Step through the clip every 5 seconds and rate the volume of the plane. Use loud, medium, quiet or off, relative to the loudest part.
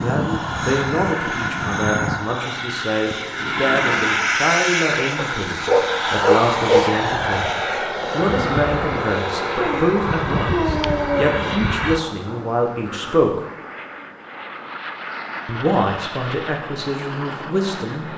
loud, loud, medium, medium.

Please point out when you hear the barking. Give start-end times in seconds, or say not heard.
5.2-6.9, 9.6-11.8.